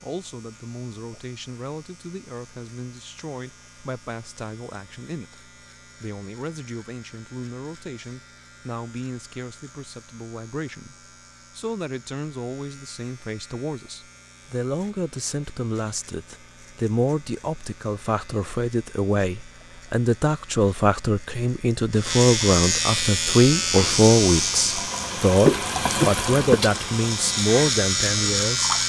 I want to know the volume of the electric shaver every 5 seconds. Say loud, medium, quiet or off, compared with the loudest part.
quiet, quiet, quiet, quiet, loud, loud.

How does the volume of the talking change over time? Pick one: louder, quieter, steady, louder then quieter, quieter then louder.
louder.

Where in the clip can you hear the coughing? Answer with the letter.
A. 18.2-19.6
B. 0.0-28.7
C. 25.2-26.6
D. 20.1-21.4
C.